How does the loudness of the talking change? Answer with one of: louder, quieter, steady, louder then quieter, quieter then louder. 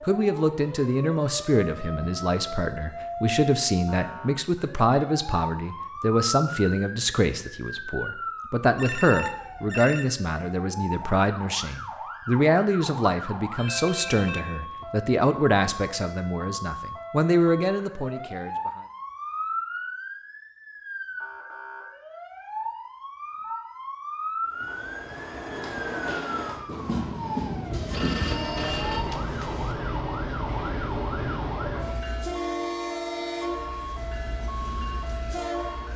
steady.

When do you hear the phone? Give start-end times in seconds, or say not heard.
8.8-10.1, 13.6-14.9, 27.7-29.8.